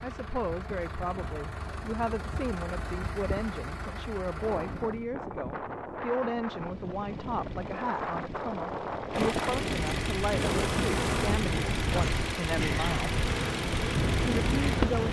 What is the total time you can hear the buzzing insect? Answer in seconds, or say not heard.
5 s.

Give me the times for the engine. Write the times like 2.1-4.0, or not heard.
0.0-5.0, 6.5-15.0.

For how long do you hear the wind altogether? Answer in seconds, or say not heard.
11 s.